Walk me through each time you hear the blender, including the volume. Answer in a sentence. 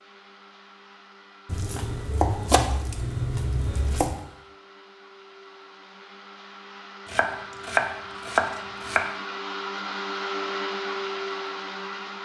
You can hear the blender from 0.0 to 12.2 s, getting louder.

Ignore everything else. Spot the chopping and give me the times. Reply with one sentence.
You can hear the chopping from 1.4 to 4.2 s and from 7.0 to 9.1 s.